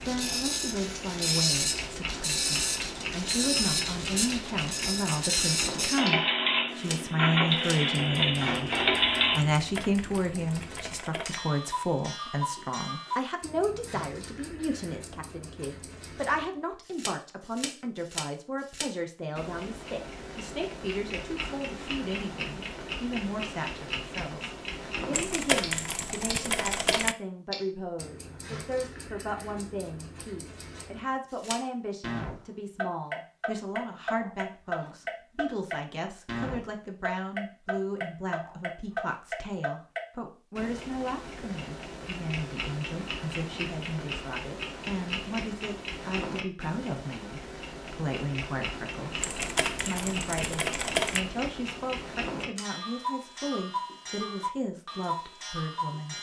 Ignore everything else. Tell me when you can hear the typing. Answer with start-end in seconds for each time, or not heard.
9.6-11.4, 25.1-27.1, 49.2-51.2.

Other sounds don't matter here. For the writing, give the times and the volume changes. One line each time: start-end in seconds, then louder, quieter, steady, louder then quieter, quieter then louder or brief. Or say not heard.
not heard.